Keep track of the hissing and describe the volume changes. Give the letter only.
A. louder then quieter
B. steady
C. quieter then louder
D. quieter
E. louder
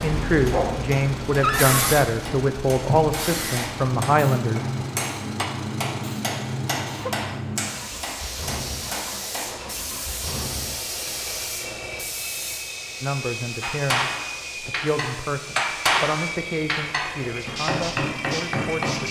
D.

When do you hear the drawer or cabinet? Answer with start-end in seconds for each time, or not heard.
1.4-1.9.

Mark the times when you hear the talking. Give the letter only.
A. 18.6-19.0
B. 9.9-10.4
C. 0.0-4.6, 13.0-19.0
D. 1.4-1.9
C.